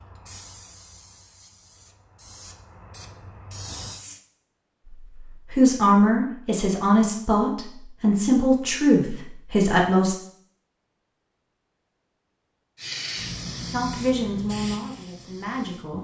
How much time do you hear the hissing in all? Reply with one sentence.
You can hear the hissing for 7 seconds altogether.